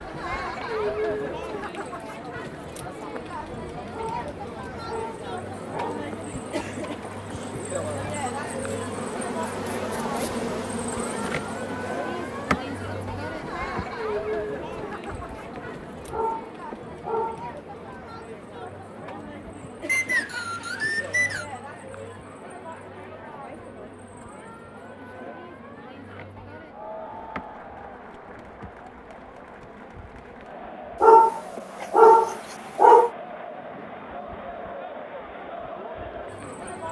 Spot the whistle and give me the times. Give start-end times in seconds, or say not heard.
19.9-21.4.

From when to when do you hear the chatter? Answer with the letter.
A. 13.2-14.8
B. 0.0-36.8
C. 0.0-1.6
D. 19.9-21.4
B.